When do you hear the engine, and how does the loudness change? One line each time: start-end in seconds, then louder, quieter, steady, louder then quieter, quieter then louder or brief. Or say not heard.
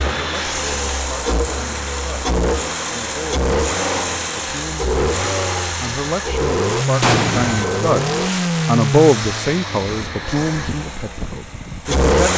0.0-12.3 quieter.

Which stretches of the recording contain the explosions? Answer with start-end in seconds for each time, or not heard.
7.0-7.8.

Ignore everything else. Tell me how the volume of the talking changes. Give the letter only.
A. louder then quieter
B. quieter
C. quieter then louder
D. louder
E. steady
A.